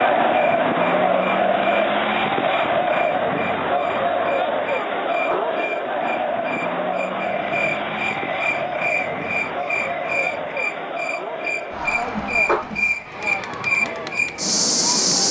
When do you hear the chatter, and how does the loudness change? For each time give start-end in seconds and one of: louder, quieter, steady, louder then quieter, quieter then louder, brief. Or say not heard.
0.0-15.2 quieter.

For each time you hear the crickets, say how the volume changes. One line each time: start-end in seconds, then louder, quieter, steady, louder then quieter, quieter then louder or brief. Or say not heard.
0.2-15.2 louder.